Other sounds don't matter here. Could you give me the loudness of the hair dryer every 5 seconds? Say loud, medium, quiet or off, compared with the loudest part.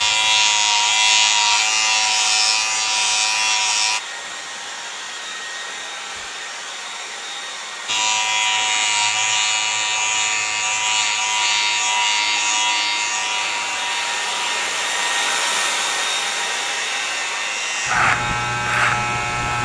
medium, medium, loud, loud.